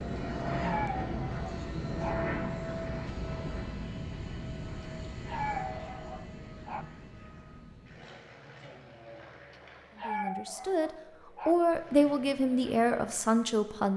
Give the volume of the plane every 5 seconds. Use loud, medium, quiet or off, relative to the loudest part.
loud, medium, quiet.